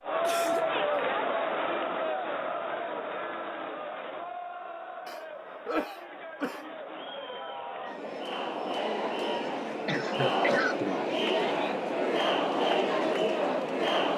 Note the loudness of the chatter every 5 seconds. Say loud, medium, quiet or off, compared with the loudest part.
loud, medium, loud.